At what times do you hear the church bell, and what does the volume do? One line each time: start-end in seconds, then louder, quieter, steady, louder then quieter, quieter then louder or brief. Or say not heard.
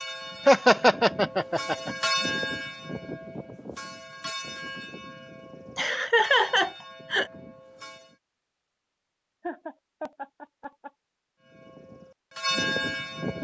0.0-8.2 louder then quieter
11.4-13.3 brief.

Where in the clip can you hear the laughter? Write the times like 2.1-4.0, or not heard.
0.5-1.9, 5.8-7.3, 9.4-10.9.